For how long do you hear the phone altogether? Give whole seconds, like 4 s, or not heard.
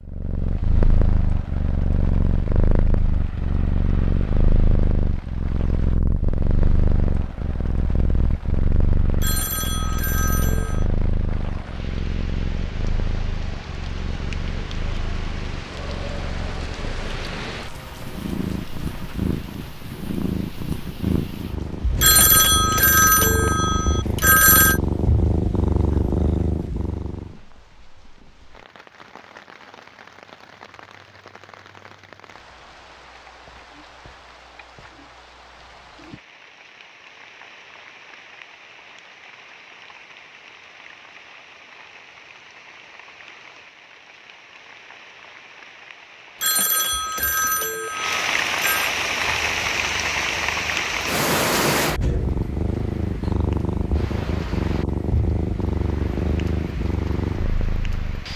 7 s.